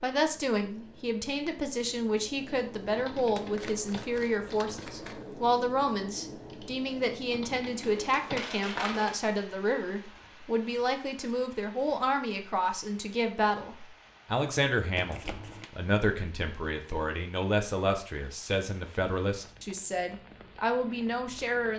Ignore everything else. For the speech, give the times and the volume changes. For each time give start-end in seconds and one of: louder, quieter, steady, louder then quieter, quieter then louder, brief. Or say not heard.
0.0-21.7 steady.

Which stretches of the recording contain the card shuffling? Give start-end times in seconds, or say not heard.
3.4-5.2, 8.0-9.2, 14.9-15.7.